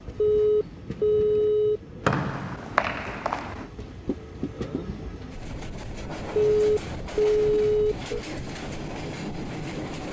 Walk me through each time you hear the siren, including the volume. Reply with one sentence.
You can't hear the siren here.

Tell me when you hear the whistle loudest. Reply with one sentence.
The volume of the whistle peaks at 2 seconds.